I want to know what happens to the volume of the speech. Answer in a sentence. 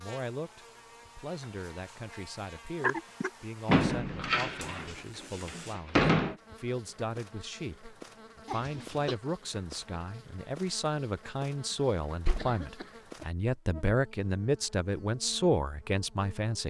The volume of the speech goes up.